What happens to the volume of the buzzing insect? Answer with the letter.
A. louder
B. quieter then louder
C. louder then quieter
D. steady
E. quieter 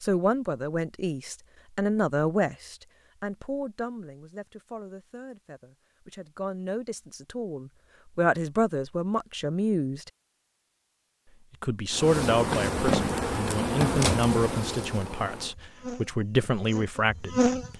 E.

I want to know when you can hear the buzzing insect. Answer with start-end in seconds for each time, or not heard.
11.9-17.7.